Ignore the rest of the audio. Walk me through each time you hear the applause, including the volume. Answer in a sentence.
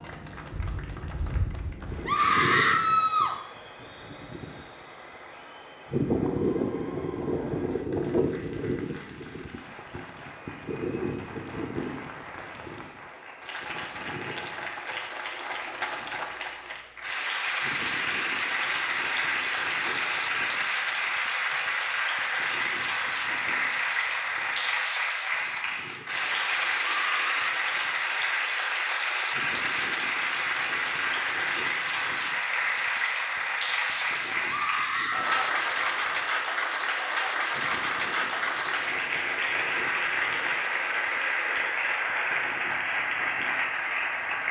The applause can be heard from 0.0 to 44.4 s, getting louder.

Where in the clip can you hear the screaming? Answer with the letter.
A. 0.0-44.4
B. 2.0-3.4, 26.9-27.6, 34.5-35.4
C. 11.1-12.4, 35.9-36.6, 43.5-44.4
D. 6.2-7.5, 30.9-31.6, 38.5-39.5
B.